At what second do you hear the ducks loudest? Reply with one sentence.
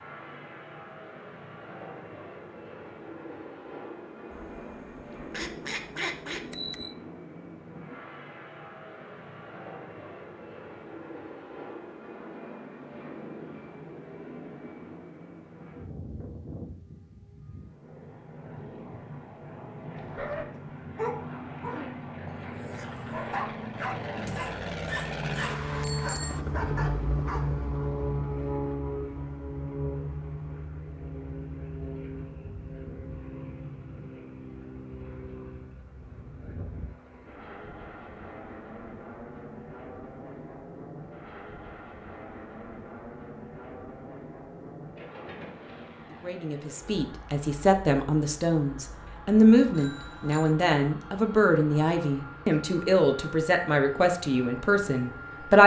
The volume of the ducks peaks at 6 seconds.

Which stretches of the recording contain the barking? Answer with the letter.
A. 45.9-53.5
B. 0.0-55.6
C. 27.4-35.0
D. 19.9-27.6
D.